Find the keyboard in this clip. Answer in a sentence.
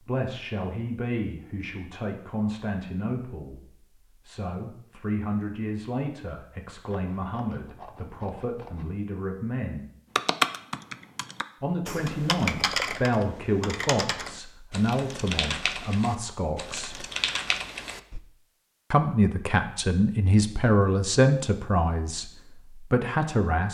You can hear the keyboard from 10.2 to 18.2 s.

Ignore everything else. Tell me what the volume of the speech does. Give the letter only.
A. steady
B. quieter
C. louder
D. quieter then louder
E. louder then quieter
C.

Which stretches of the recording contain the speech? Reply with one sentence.
You can hear the speech from 0.0 to 3.6 s, from 4.2 to 9.8 s, from 11.6 to 17.1 s and from 18.9 to 23.6 s.